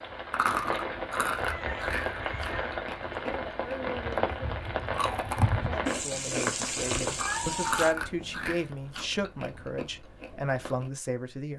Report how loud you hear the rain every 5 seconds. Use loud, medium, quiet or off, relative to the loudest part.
loud, loud, off.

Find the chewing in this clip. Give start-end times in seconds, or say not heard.
0.3-10.9.